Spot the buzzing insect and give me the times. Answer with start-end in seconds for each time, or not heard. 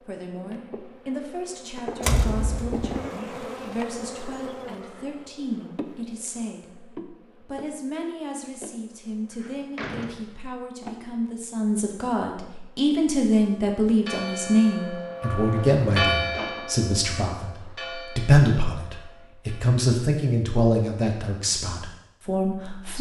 0.0-12.9.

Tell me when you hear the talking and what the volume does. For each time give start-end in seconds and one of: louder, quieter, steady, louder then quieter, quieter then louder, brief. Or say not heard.
0.1-22.9 louder.